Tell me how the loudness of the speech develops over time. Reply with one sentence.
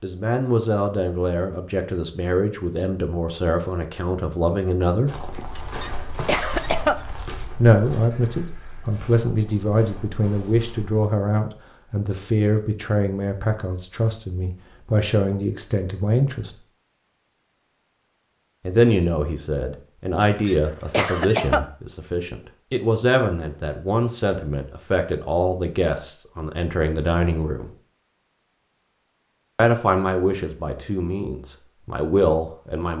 The loudness of the speech stays about the same.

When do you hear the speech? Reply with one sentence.
The speech can be heard from 0.0 to 5.2 s, from 7.5 to 16.6 s, from 18.6 to 27.7 s and from 29.6 to 32.9 s.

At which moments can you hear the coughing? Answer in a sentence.
The coughing can be heard from 5.5 to 7.0 s and from 20.2 to 21.6 s.